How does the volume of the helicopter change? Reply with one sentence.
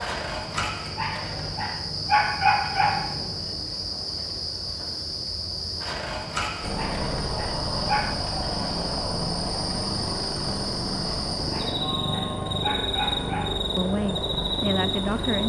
The volume of the helicopter stays about the same.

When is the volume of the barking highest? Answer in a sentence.
The loudest moment of the barking is at 2 seconds.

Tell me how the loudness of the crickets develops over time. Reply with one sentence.
The volume of the crickets stays about the same.